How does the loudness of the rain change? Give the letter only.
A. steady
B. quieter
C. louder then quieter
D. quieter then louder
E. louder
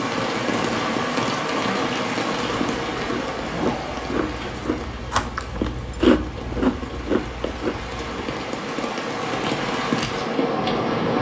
D.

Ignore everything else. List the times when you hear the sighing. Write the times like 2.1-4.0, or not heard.
3.5-4.1.